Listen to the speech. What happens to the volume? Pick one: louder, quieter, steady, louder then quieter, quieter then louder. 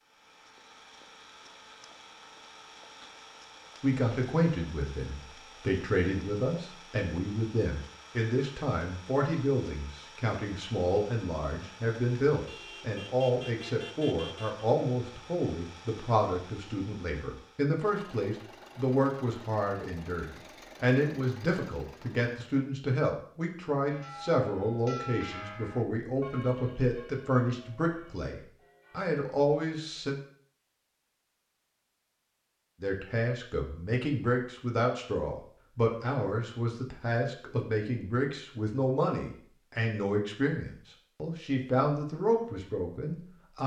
steady.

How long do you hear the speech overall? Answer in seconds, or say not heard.
37 s.